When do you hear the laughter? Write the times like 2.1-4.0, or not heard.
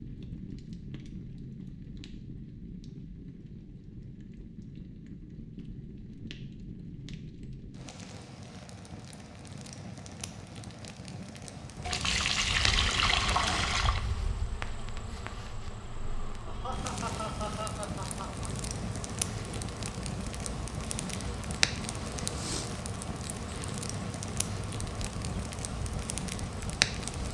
16.4-18.5.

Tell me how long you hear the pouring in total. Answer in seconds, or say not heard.
2 s.